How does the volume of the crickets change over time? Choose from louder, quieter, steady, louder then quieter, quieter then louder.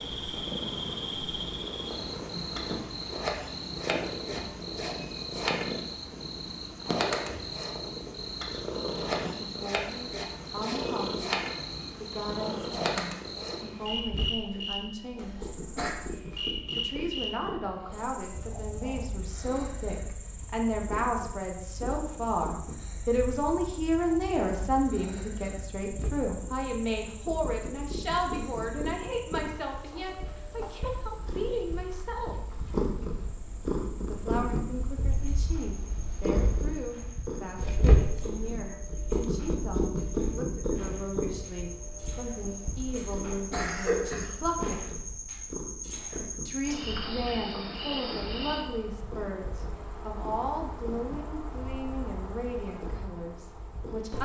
quieter then louder.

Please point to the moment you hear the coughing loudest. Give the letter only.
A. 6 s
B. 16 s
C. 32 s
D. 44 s
D.